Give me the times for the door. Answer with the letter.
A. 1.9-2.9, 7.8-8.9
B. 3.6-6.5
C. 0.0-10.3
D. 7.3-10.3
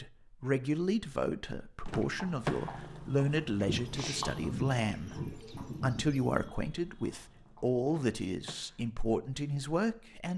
A.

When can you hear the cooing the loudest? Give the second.
5 s.